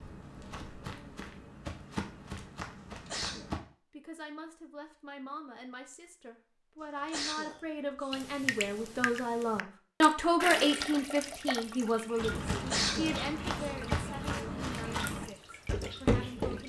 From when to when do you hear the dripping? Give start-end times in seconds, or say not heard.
8.1-16.6.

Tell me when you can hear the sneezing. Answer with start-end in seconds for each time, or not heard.
2.9-3.5, 7.0-8.1, 12.6-13.7.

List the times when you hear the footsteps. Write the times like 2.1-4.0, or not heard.
0.0-3.6, 12.2-16.6.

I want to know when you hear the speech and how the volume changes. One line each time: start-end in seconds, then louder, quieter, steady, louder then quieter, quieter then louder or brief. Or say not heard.
3.9-16.6 louder then quieter.